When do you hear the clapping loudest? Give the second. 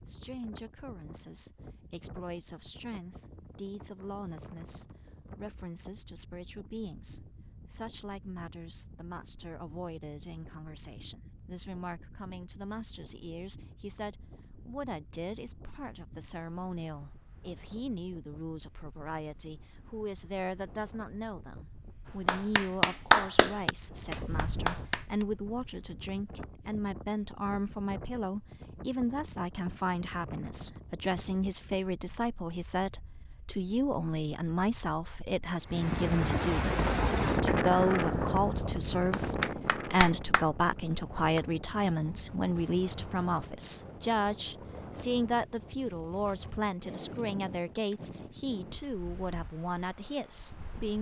23 s.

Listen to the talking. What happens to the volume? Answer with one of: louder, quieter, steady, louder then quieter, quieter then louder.
louder.